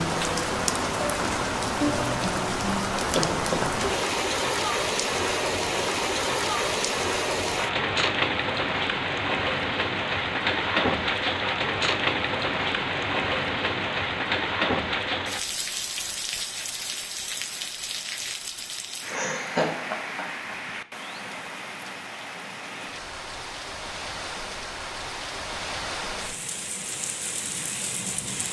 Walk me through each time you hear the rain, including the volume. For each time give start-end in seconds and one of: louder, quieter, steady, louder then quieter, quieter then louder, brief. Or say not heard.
0.0-28.4 quieter.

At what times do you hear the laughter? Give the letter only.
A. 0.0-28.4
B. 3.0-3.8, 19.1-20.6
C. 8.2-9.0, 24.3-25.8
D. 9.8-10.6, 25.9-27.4
B.